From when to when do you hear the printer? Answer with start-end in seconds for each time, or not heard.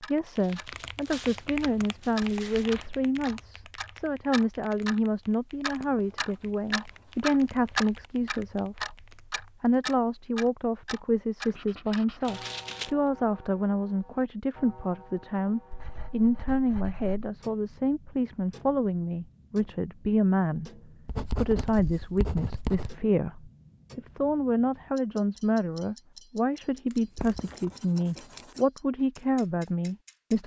not heard.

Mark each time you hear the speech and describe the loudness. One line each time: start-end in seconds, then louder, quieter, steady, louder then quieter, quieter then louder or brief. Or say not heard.
0.0-20.7 steady
21.4-30.4 steady.